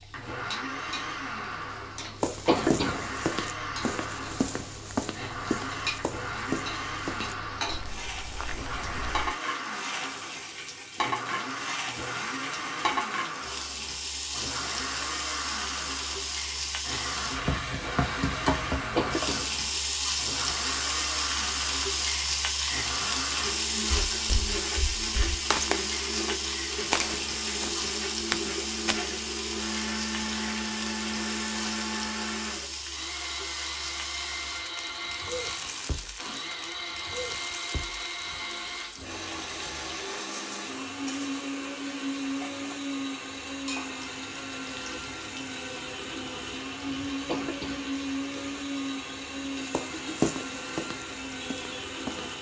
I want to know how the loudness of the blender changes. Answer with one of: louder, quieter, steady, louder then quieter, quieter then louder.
steady.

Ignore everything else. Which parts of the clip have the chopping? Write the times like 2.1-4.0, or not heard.
not heard.